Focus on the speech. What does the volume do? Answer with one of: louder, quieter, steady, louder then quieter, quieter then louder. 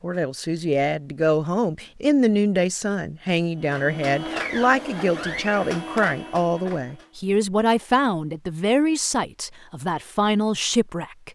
steady.